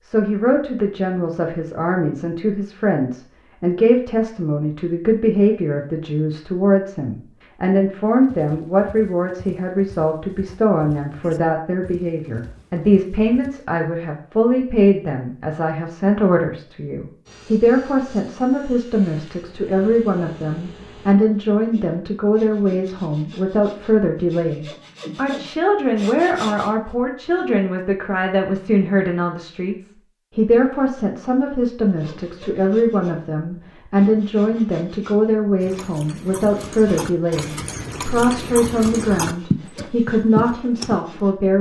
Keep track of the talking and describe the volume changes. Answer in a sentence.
The volume of the talking stays about the same.